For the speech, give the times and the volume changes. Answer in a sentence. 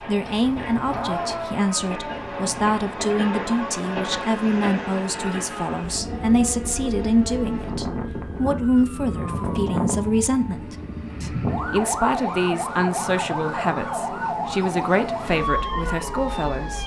The speech can be heard from 0.1 to 16.8 s, at a steady volume.